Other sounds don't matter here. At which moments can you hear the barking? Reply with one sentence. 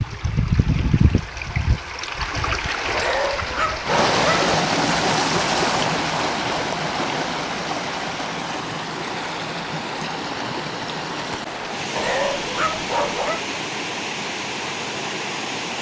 You can hear the barking from 2.9 to 4.5 s and from 11.9 to 13.4 s.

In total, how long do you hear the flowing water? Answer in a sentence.
The flowing water can be heard for 16 seconds in total.